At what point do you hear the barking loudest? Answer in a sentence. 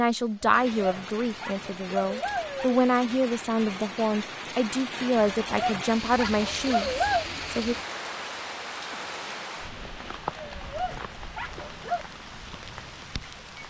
The loudest moment of the barking is at 7 seconds.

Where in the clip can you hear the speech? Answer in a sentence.
The speech can be heard from 0.0 to 7.8 s.